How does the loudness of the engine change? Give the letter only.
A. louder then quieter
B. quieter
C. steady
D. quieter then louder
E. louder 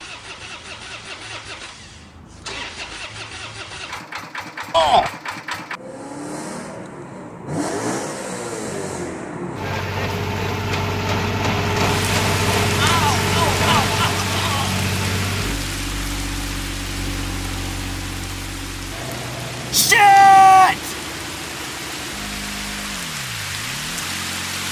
A.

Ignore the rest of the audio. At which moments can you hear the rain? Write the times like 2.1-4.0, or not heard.
11.7-24.6.